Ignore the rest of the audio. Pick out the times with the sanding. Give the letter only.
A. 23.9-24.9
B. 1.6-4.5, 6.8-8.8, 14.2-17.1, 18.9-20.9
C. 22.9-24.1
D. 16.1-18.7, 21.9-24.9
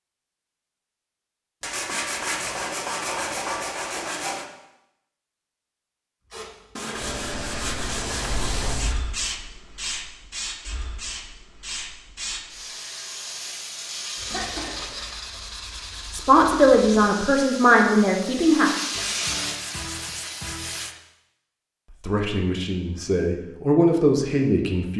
B.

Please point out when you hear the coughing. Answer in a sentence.
You can hear the coughing from 14.3 to 15.4 s.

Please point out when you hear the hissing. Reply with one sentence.
The hissing can be heard from 6.3 to 20.9 s.